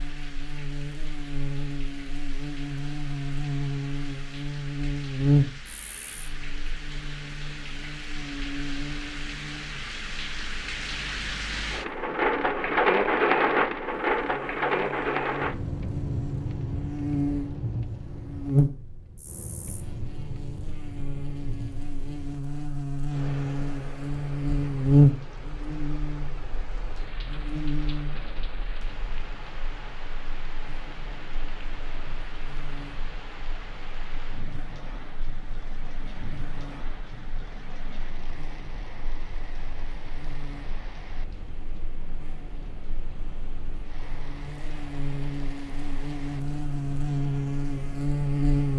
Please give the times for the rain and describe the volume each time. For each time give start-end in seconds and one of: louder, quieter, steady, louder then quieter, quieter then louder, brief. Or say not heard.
0.0-48.7 louder then quieter.